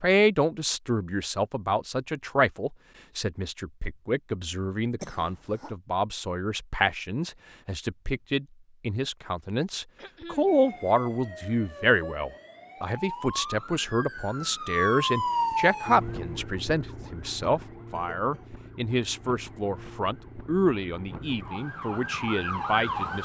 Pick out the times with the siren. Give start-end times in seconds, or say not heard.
10.4-23.2.